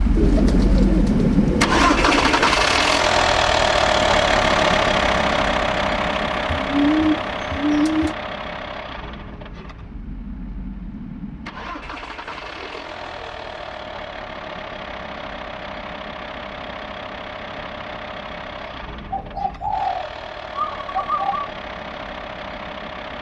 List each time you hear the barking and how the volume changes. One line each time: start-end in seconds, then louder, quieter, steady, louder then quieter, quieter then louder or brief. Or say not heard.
not heard.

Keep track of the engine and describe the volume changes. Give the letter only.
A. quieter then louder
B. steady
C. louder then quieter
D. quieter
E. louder
D.